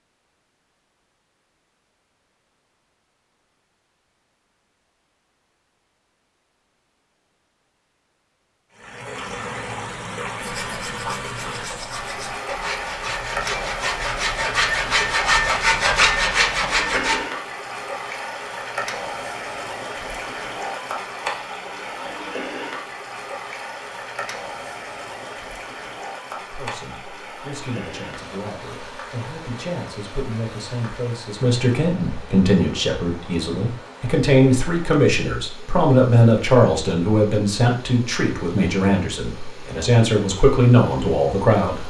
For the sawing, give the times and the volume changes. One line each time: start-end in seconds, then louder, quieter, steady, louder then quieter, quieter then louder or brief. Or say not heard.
10.3-17.2 louder.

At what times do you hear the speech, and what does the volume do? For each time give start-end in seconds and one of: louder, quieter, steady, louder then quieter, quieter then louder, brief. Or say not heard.
26.4-41.8 louder.